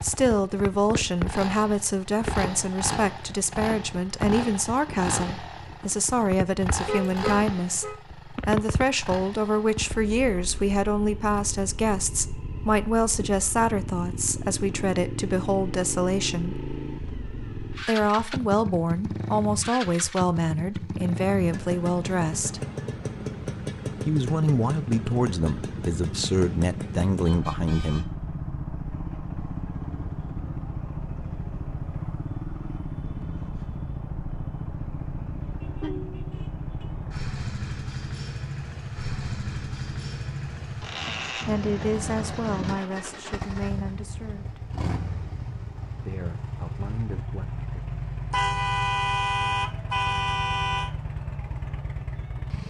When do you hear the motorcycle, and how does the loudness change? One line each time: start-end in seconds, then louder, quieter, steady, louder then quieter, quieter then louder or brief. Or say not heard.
0.0-52.6 steady.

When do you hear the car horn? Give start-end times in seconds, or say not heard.
6.8-8.0, 26.4-28.1, 48.3-50.9.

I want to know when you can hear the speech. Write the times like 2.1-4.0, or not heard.
0.0-16.6, 17.8-22.6, 24.1-28.1, 41.5-44.7, 46.0-48.0.